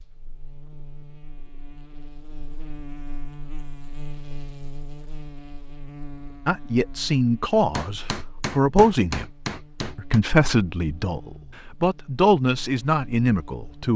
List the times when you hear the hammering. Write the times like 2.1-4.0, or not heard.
7.7-10.2.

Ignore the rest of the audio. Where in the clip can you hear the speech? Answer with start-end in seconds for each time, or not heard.
6.5-9.2, 9.9-13.9.